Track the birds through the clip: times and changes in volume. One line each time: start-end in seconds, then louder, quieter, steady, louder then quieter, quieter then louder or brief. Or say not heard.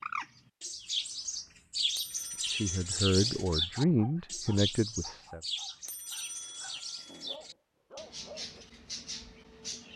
0.0-9.9 quieter.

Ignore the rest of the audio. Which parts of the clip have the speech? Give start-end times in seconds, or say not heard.
2.5-5.4.